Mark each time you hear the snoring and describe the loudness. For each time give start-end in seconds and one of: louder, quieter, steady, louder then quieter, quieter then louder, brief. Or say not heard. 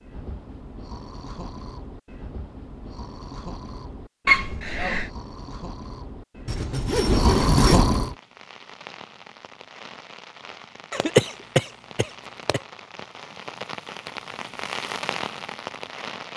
0.0-8.2 louder.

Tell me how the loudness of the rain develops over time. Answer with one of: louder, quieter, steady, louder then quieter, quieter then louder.
louder.